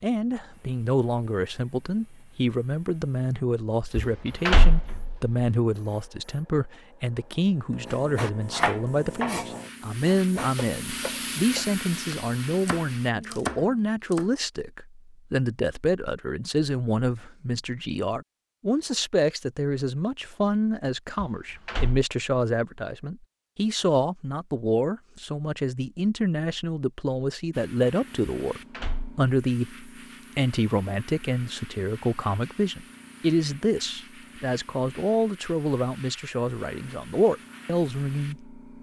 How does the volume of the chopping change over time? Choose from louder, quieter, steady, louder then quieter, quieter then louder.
quieter then louder.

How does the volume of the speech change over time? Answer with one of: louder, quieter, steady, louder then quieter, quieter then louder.
steady.